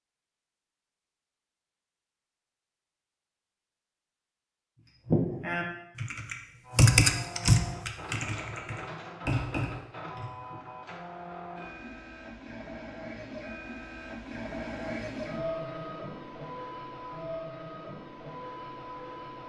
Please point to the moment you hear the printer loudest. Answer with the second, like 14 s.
15 s.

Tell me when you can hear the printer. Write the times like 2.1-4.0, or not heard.
6.6-19.4.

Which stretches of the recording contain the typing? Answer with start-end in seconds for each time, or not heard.
4.8-10.6.